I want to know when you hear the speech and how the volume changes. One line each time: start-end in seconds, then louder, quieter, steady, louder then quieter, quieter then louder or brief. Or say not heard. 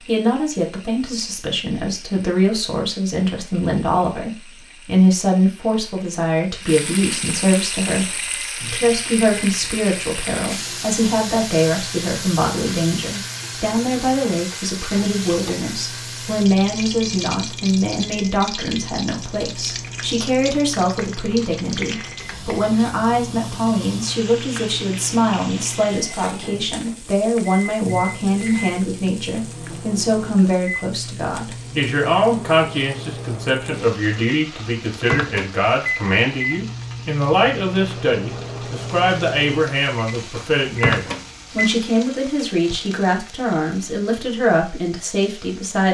0.1-45.8 steady.